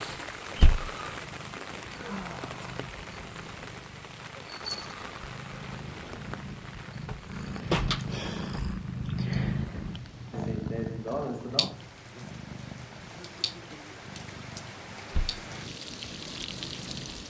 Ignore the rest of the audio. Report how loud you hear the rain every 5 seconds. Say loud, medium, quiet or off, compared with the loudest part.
loud, medium, medium, loud.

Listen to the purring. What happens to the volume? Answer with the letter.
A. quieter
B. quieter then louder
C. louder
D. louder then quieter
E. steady
D.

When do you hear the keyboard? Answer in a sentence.
You can't hear the keyboard here.